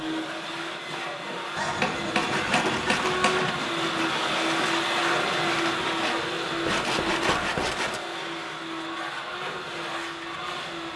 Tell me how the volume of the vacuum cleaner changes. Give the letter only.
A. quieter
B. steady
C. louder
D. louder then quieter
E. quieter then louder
D.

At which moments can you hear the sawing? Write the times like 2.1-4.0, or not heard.
2.2-8.0.